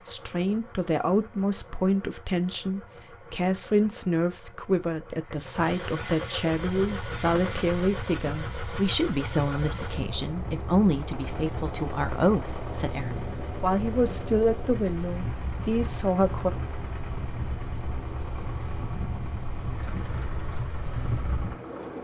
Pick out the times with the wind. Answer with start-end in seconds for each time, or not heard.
6.8-21.9.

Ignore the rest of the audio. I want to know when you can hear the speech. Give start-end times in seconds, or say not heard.
0.1-16.5.